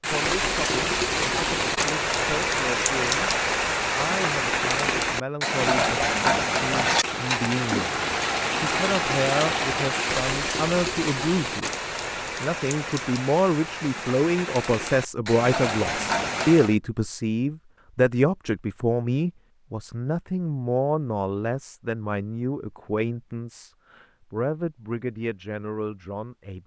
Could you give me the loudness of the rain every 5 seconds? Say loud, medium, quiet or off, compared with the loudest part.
loud, loud, medium, loud, off, off.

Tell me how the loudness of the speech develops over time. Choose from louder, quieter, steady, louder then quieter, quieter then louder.
louder then quieter.